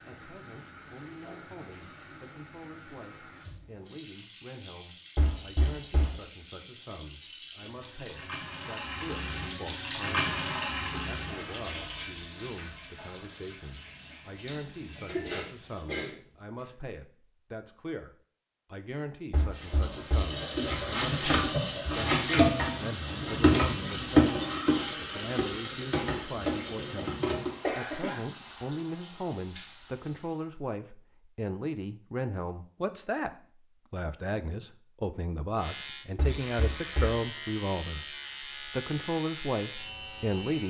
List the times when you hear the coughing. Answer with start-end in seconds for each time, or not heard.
15.1-16.6, 27.6-28.2.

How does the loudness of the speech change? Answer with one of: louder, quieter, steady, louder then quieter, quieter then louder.
louder.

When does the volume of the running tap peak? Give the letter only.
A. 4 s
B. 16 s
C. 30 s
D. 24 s
D.